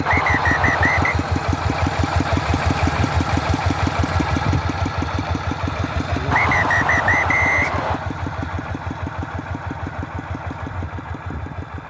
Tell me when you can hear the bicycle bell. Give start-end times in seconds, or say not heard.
not heard.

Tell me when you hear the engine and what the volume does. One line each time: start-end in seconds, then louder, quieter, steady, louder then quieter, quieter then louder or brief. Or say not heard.
0.0-11.8 quieter.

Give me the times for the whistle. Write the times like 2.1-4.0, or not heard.
0.1-1.1, 6.3-8.0.